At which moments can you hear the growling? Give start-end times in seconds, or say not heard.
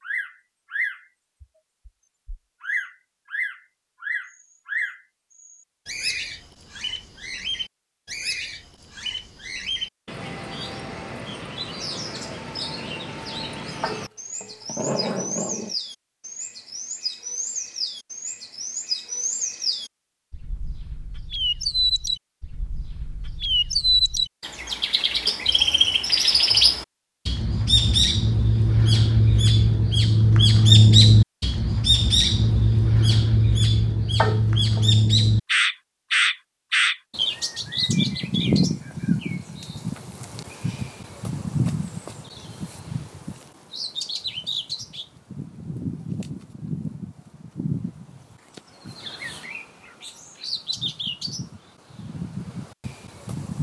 13.8-15.8, 34.2-34.9.